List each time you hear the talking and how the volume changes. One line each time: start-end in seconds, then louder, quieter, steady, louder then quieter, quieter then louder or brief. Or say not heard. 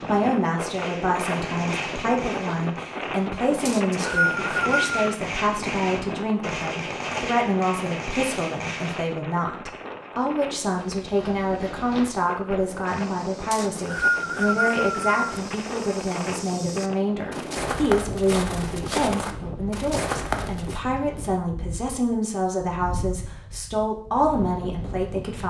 0.1-25.4 steady.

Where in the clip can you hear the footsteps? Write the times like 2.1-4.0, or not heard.
10.7-20.8.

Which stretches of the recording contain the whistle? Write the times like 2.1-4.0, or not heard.
3.6-5.0, 13.5-15.2.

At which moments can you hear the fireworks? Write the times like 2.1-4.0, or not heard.
0.6-9.1.